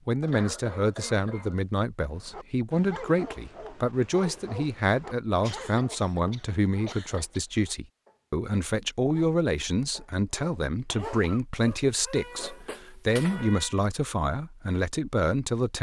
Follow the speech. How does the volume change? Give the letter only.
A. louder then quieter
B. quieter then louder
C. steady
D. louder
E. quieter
C.